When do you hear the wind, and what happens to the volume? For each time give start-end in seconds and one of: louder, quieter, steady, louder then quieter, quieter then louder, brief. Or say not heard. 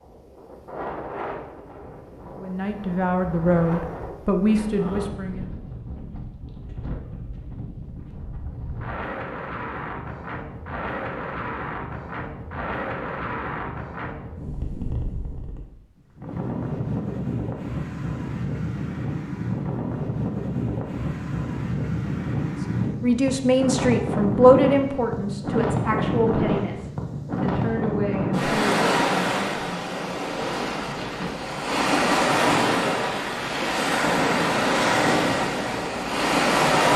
0.0-36.9 louder.